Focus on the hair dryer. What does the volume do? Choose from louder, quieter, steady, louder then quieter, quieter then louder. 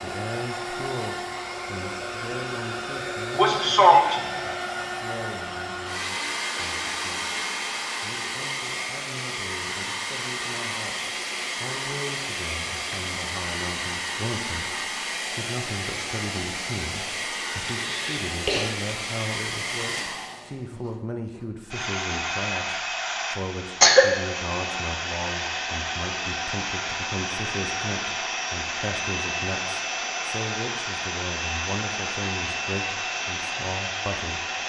steady.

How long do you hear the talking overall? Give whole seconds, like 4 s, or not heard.
34 s.